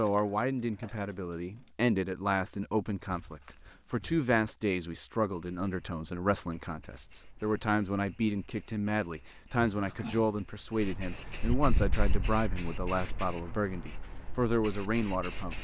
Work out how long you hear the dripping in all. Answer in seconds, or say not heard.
not heard.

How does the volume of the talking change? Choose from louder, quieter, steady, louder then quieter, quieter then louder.
steady.